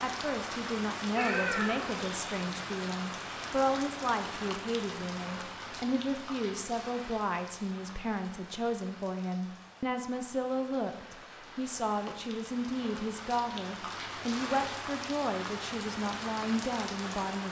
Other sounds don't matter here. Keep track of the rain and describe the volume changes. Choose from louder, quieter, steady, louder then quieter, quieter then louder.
quieter then louder.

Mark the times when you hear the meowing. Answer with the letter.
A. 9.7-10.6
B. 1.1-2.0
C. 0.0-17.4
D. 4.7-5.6
B.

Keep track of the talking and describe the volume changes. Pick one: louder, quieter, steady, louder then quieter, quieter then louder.
steady.